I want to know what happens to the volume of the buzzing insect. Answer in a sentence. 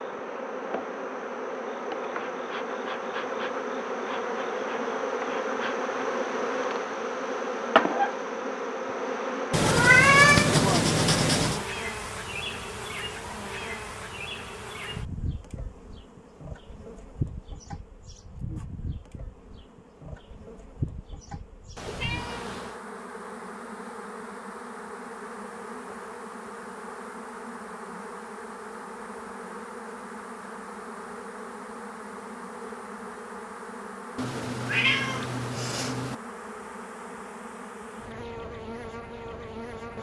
The loudness of the buzzing insect goes down.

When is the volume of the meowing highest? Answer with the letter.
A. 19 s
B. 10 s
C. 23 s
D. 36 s
B.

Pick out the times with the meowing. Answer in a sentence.
The meowing can be heard from 9.5 to 11.7 s, from 21.8 to 22.8 s and from 34.1 to 36.1 s.